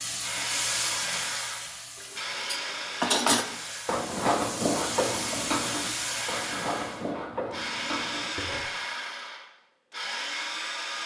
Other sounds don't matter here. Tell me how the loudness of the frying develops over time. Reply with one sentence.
The loudness of the frying goes down, then up.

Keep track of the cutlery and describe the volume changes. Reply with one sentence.
The volume of the cutlery goes down.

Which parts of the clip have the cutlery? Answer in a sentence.
The cutlery can be heard from 2.0 to 8.6 s.